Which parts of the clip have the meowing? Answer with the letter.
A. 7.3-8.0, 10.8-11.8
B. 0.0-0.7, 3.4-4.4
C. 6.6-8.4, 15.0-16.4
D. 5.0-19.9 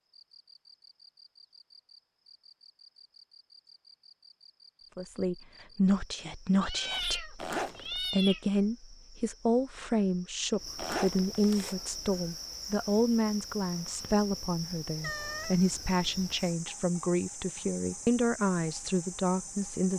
C.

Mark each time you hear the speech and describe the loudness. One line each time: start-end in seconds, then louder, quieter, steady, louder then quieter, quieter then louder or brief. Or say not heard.
5.0-19.9 steady.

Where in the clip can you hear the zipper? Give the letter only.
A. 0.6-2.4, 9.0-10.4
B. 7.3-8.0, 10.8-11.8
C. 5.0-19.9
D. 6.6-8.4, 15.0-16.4
B.